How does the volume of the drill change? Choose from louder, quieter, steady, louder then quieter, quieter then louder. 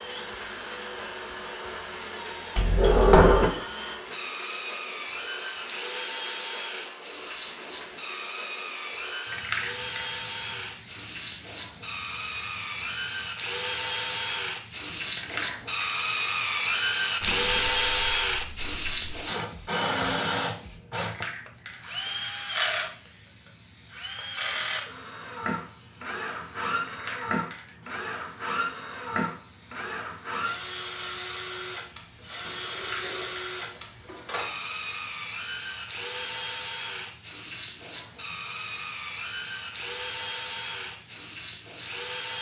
louder then quieter.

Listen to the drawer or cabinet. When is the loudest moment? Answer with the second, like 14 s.
3 s.